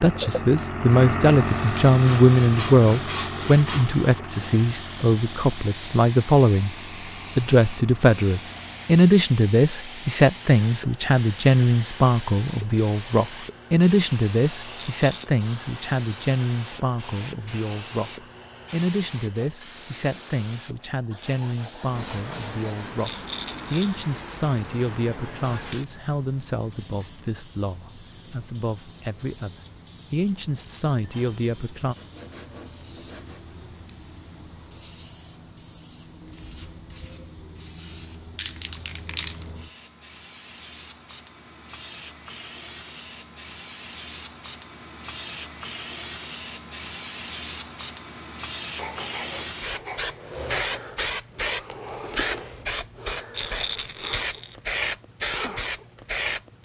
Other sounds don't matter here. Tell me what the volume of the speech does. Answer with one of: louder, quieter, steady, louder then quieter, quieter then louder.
quieter.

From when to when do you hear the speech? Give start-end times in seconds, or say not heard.
0.0-6.8, 7.3-23.1, 23.7-31.9.